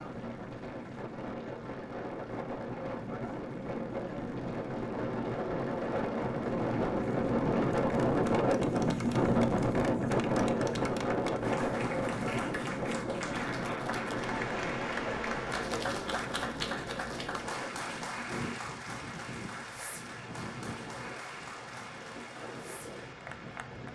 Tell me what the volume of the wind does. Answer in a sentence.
The loudness of the wind goes up, then down.